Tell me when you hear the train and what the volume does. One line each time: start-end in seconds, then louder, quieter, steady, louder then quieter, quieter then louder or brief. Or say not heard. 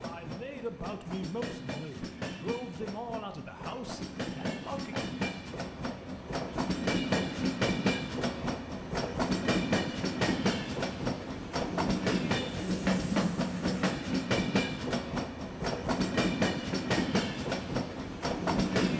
0.0-18.9 louder.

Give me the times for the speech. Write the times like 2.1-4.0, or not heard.
0.0-5.0.